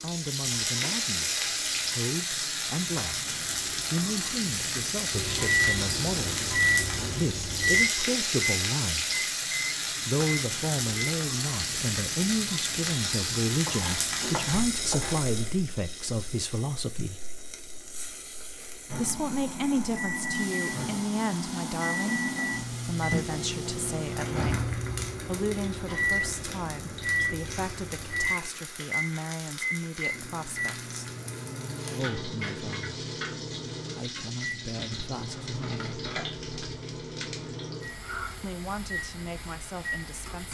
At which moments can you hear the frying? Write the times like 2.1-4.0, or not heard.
0.0-40.4.